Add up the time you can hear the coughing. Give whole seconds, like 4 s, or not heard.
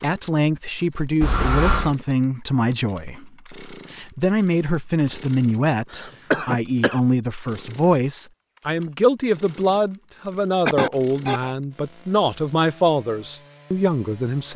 3 s.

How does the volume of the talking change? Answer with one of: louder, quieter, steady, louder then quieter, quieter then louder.
steady.